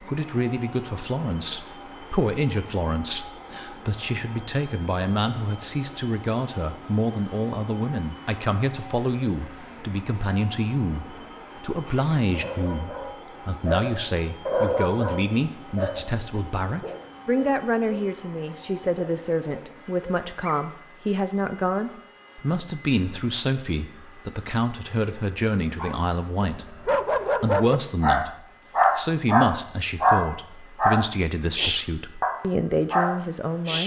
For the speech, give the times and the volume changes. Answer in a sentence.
You can hear the speech from 0.0 to 33.8 s, at a steady volume.